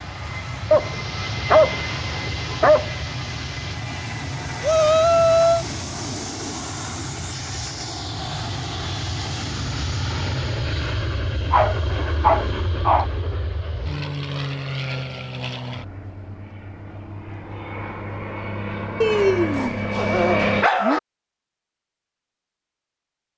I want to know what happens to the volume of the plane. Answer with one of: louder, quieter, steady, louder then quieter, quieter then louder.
steady.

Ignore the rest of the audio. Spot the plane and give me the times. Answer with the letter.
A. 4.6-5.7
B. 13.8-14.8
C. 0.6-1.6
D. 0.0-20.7
D.